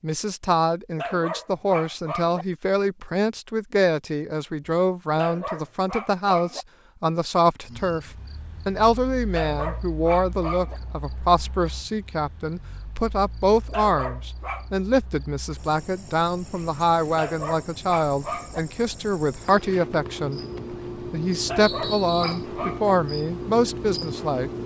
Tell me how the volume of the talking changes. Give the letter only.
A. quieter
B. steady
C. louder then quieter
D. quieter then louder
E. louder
B.